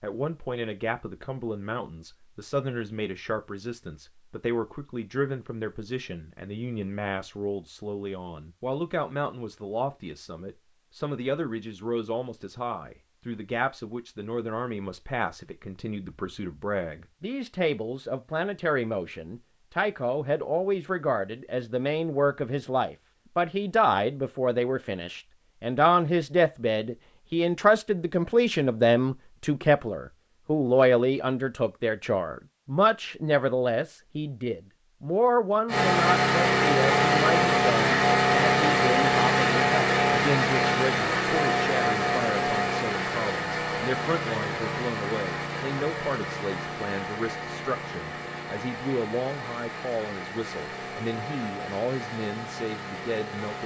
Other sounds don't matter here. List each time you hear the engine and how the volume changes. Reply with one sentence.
You can hear the engine from 35.6 to 53.6 s, getting quieter.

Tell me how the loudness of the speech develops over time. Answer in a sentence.
The loudness of the speech goes up, then down.